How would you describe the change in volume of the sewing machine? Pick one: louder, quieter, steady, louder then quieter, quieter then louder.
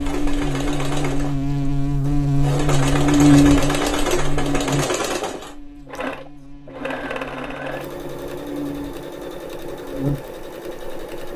louder then quieter.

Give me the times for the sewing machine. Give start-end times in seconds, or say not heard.
0.0-11.3.